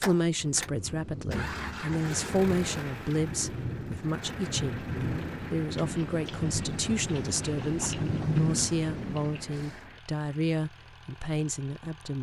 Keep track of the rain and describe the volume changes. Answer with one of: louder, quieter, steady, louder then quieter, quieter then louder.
louder.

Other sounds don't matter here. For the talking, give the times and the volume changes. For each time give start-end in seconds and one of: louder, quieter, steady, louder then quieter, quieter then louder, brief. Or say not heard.
0.0-12.1 steady.